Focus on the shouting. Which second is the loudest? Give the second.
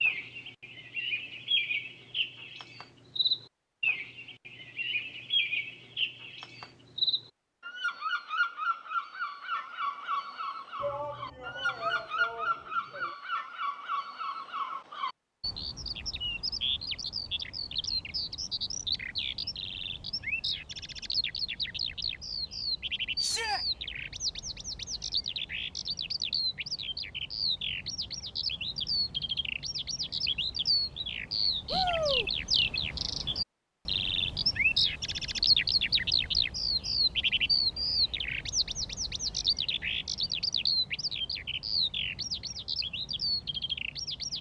32 s.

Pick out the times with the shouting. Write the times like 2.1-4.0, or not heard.
10.8-13.2, 23.2-23.6, 31.7-32.3.